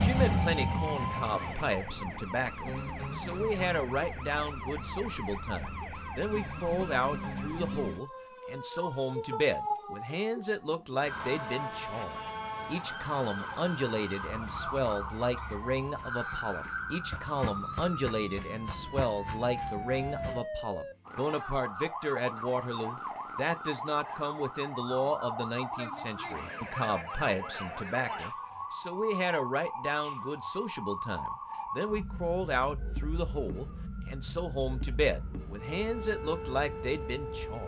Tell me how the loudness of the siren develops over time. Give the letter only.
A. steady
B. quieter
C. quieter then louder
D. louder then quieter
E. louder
A.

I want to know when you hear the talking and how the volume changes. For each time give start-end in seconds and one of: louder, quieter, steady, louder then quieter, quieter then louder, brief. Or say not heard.
0.0-37.6 steady.